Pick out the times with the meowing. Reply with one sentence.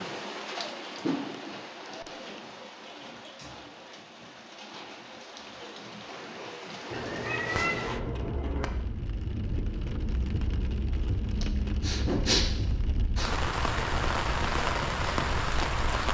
You can hear the meowing from 6.9 to 8.7 s.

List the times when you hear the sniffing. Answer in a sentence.
The sniffing can be heard from 11.4 to 13.3 s.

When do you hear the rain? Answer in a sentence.
The rain can be heard from 0.0 to 16.0 s.